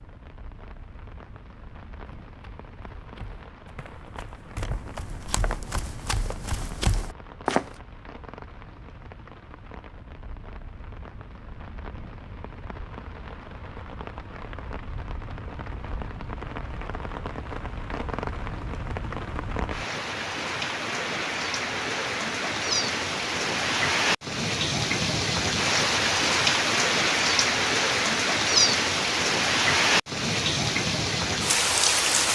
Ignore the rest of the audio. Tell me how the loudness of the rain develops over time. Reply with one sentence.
The loudness of the rain goes up.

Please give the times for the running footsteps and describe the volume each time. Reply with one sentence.
The running footsteps can be heard from 1.9 to 7.7 s, getting louder.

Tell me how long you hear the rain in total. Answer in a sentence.
You can hear the rain for 32 seconds altogether.